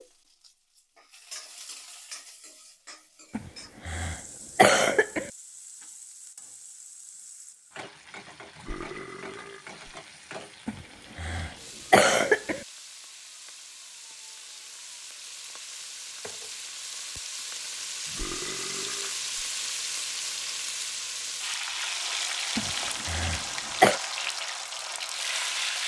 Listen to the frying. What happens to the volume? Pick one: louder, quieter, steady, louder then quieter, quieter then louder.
louder.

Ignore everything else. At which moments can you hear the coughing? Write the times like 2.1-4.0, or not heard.
3.4-5.3, 10.7-12.7, 22.6-24.0.